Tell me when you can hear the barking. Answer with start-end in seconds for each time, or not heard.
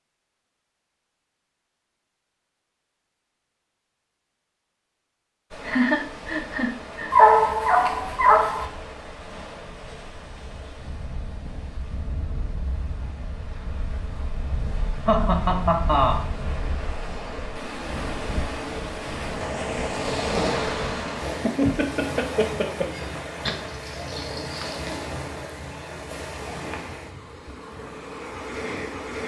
7.1-8.7, 23.4-24.9.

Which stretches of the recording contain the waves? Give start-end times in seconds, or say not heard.
5.5-29.2.